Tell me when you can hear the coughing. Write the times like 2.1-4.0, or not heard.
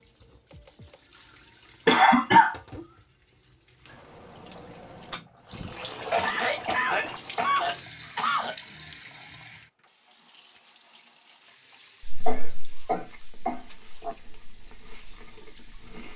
1.9-2.5, 6.1-8.6, 12.2-14.2.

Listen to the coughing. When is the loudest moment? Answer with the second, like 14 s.
2 s.